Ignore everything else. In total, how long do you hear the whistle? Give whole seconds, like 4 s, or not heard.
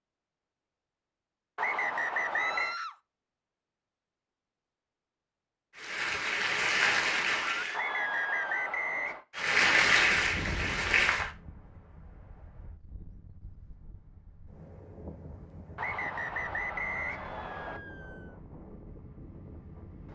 5 s.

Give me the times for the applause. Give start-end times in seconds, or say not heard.
5.8-7.8, 9.3-11.3.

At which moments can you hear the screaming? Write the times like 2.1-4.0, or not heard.
2.3-3.0, 7.5-8.8, 16.9-18.4.